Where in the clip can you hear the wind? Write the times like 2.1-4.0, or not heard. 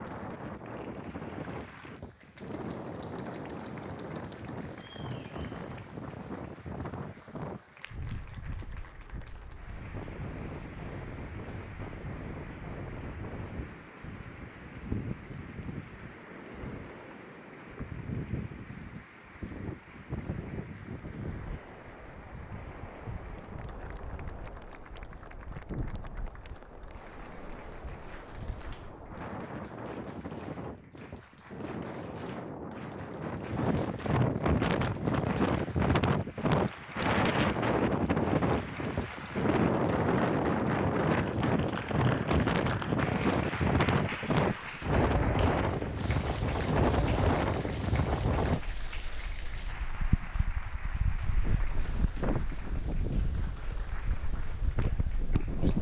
0.0-55.7.